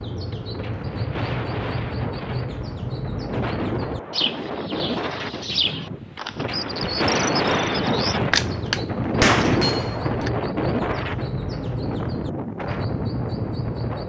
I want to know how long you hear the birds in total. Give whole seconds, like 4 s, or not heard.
14 s.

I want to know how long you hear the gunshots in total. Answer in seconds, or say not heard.
2 s.